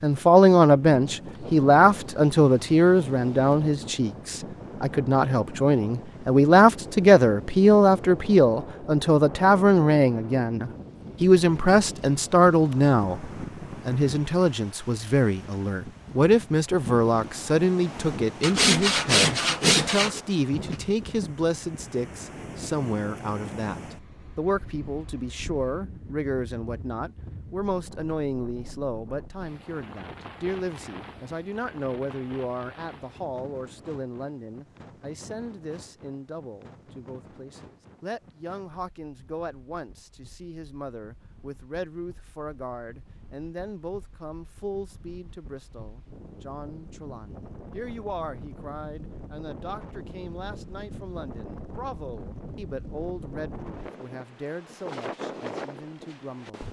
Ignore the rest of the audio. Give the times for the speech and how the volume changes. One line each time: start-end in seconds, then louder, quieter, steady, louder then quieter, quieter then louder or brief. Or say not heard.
0.0-56.6 quieter.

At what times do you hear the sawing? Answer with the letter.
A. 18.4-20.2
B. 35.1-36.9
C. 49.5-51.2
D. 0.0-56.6
A.